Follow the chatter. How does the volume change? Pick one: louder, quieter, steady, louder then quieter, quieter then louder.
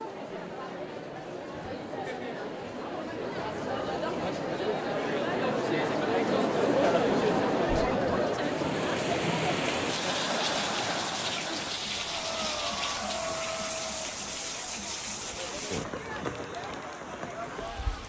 louder then quieter.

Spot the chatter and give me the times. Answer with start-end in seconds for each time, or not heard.
0.0-18.0.